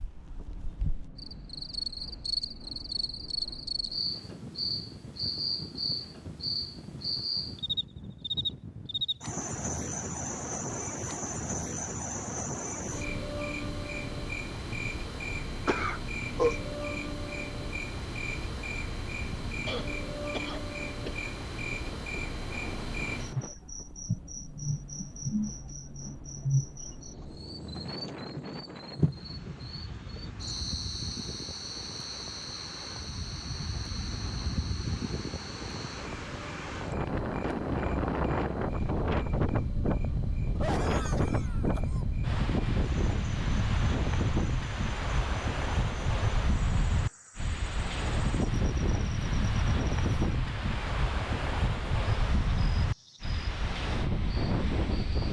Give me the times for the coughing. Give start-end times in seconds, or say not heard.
15.7-16.6, 19.6-21.3, 40.5-42.0.